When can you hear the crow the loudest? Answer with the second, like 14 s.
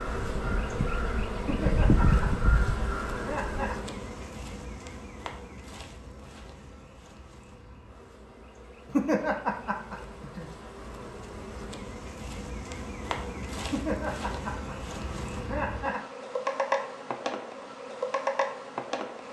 2 s.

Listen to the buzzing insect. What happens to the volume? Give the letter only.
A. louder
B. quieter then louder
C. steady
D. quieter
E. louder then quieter
B.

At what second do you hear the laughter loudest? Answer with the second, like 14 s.
9 s.